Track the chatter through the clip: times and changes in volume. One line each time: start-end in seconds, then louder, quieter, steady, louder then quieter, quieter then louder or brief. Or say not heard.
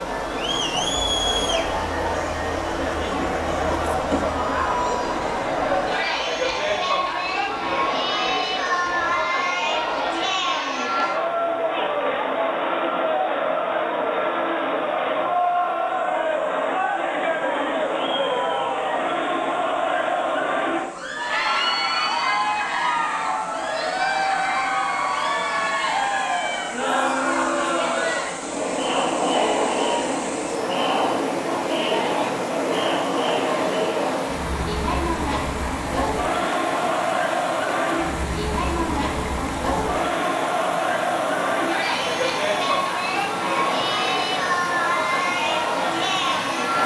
0.0-46.8 steady.